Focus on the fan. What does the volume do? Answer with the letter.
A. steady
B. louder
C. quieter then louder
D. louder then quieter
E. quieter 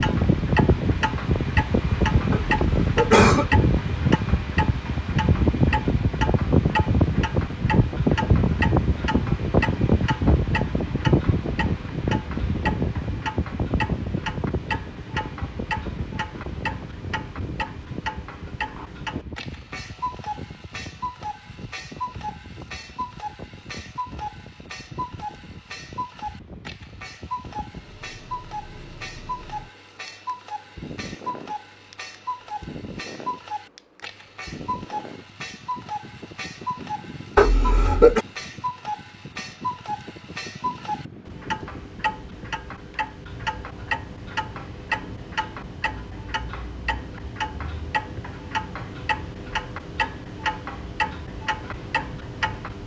E.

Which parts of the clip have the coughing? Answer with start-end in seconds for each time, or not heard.
2.3-3.5, 37.4-38.2.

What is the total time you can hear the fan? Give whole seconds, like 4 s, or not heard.
53 s.